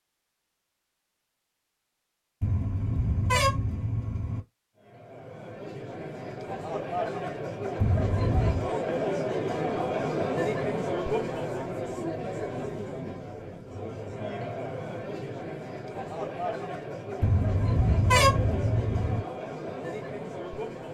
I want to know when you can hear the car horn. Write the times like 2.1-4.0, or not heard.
2.4-4.4, 7.8-8.7, 17.2-19.2.